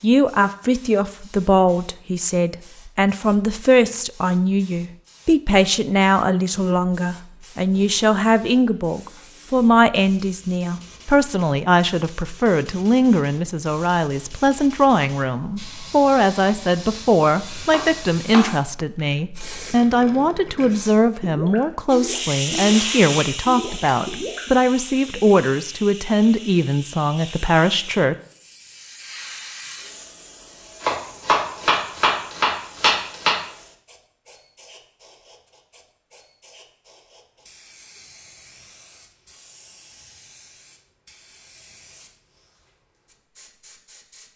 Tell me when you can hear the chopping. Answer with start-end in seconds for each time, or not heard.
17.7-18.5, 30.8-33.4.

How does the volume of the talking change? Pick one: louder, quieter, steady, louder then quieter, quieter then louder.
steady.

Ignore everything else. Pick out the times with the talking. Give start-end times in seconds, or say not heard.
0.0-28.1.